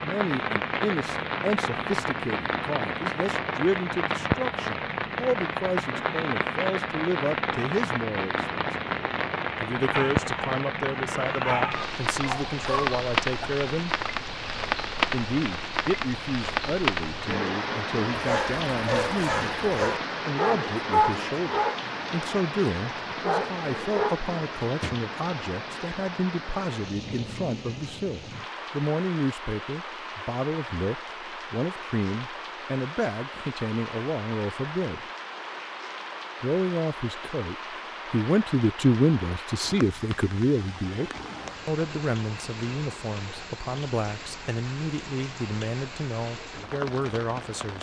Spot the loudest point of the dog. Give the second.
21 s.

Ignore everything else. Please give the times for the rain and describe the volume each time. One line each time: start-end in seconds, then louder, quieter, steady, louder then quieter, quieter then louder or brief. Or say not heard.
0.0-47.7 quieter.